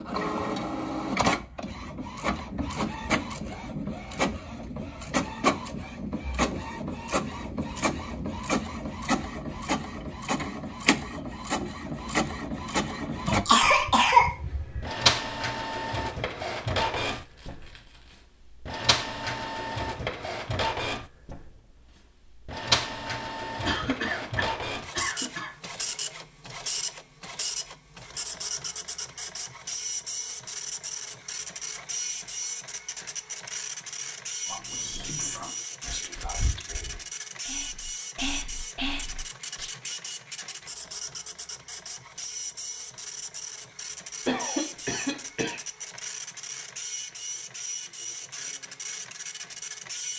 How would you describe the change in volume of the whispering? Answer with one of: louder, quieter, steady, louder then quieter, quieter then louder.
quieter then louder.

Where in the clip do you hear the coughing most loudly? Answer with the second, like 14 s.
14 s.